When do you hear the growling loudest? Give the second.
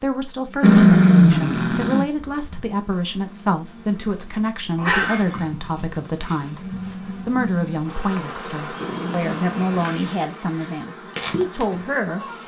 1 s.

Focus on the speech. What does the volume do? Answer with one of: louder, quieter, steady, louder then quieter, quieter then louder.
steady.